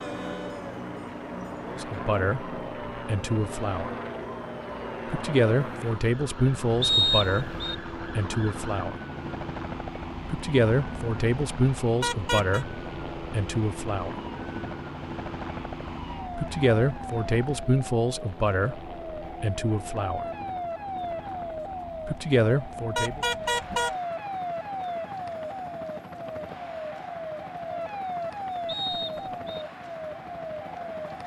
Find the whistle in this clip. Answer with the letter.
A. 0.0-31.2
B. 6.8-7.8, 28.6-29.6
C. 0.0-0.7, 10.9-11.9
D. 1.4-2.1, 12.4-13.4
B.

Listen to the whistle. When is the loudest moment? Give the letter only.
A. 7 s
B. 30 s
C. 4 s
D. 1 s
A.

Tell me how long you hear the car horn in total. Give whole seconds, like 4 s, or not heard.
2 s.